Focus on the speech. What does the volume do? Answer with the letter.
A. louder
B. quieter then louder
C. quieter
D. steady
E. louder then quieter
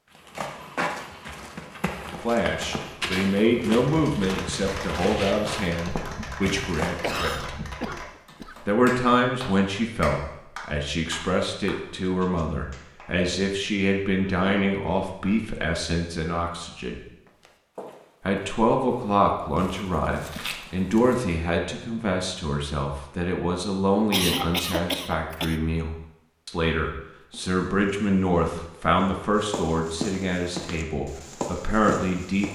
D.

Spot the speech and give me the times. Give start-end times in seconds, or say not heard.
2.2-7.5, 8.7-17.0, 18.2-32.5.